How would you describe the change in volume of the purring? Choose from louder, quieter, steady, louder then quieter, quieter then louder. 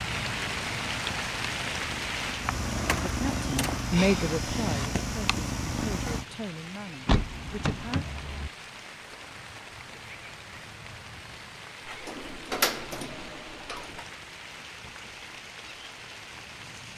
louder.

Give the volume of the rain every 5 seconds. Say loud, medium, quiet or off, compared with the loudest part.
loud, medium, medium, medium.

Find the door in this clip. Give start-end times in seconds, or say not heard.
2.9-3.9, 7.0-8.5, 11.8-14.1.